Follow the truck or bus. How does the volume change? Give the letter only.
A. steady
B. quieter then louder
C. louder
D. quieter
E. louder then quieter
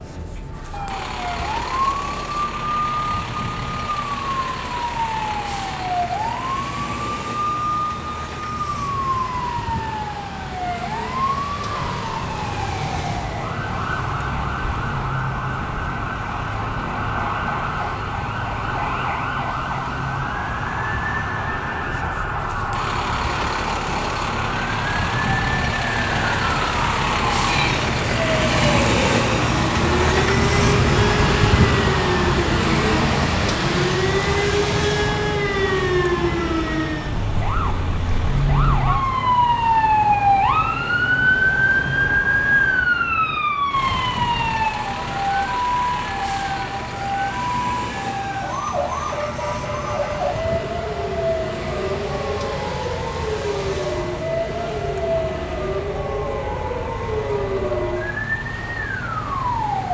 E.